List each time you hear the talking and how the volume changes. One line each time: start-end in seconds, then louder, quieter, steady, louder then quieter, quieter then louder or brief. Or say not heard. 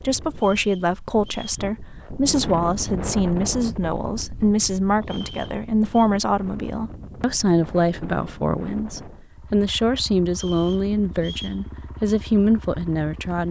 0.0-13.4 steady.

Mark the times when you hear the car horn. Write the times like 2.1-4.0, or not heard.
not heard.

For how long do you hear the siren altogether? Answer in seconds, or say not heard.
not heard.